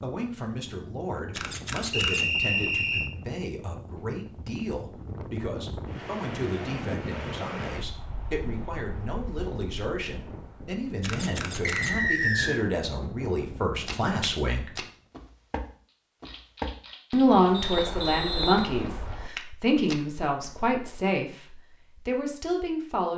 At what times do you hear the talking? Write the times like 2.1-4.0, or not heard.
0.0-14.7, 17.1-23.1.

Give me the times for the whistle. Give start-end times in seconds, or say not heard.
1.9-3.1, 11.6-12.6, 17.5-18.9.